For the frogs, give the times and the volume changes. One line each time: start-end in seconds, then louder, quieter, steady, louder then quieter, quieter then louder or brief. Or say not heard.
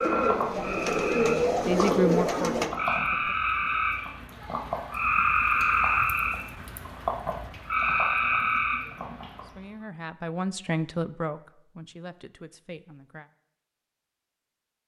0.0-9.6 louder.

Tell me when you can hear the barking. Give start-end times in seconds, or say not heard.
not heard.